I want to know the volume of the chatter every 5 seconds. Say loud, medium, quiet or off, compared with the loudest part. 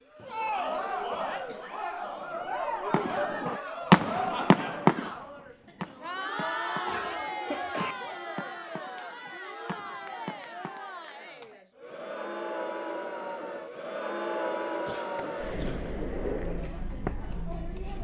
loud, loud, loud, medium.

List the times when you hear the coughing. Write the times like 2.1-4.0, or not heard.
0.7-1.8, 6.8-8.0, 14.8-15.9.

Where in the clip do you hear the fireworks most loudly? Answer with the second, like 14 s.
4 s.